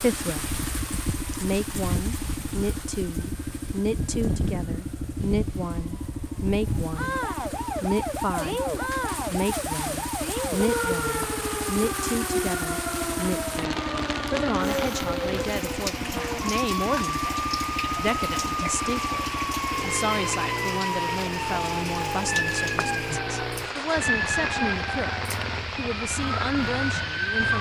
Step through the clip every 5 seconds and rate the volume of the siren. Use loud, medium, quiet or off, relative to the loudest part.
medium, loud, loud, loud, loud, loud.